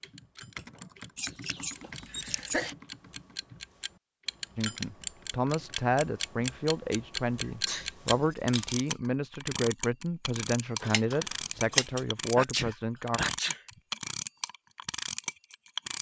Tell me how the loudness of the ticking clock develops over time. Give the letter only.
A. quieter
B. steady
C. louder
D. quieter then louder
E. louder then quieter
C.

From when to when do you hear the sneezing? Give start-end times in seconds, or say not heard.
1.8-2.8, 7.5-7.9, 12.3-13.6.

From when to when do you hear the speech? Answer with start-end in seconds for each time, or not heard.
4.5-13.2.